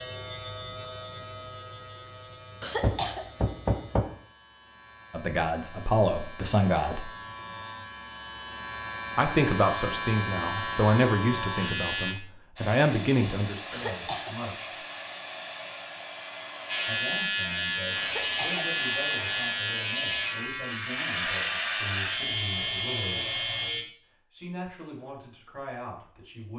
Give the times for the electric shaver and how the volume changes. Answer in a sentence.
The electric shaver can be heard from 0.0 to 12.2 s, getting quieter then louder; and from 16.6 to 23.9 s, at a steady volume.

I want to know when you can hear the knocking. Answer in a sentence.
The knocking can be heard from 2.8 to 4.0 s.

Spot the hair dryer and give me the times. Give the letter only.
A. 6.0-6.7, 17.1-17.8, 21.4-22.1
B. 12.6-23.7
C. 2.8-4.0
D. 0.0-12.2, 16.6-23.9
B.